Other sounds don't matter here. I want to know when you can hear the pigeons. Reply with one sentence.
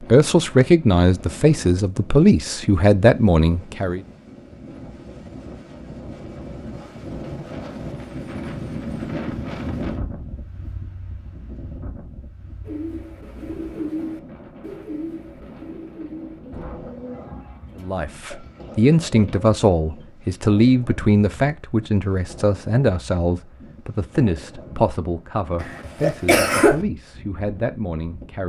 The pigeons can be heard from 12.7 to 20.1 s.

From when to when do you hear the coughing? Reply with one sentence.
You can hear the coughing from 25.6 to 26.8 s.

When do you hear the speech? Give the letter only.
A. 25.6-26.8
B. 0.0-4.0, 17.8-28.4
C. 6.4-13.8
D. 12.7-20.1
B.